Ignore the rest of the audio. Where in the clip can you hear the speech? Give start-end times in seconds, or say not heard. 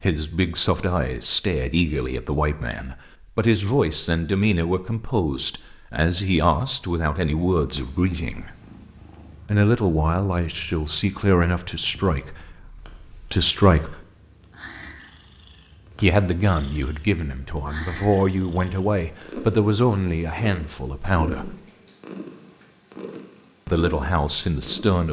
0.0-8.5, 9.4-14.1, 16.0-21.6, 23.6-25.0.